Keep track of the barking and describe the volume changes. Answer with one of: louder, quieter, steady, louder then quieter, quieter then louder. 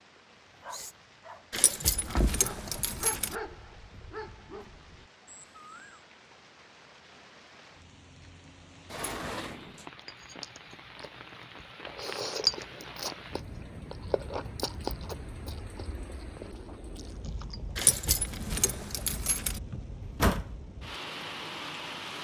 louder then quieter.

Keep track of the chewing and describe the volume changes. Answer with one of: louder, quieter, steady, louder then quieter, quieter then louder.
louder then quieter.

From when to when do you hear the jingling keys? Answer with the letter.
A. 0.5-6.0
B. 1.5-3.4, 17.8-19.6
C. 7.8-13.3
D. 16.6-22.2
B.